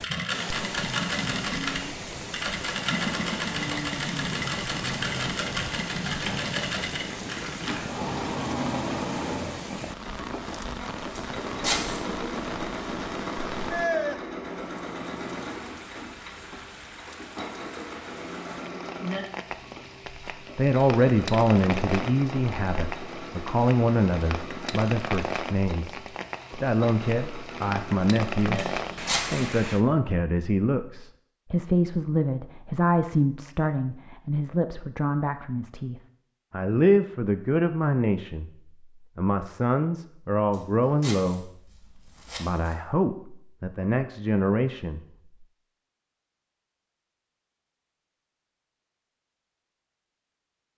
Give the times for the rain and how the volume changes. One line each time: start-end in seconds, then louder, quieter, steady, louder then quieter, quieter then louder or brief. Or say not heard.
0.0-29.9 steady.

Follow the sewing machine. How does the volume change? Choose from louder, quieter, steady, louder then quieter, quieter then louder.
quieter.